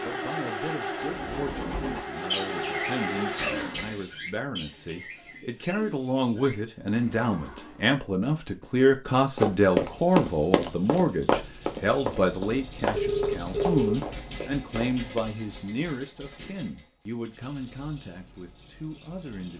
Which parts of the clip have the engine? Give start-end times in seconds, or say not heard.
0.0-4.2, 9.8-19.5.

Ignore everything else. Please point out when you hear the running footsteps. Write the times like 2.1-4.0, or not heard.
9.3-15.2.